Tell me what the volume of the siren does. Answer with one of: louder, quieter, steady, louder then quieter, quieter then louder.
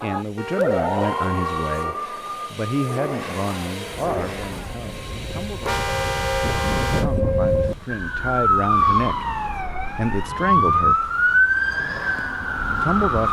quieter then louder.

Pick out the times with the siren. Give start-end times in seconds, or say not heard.
0.0-13.2.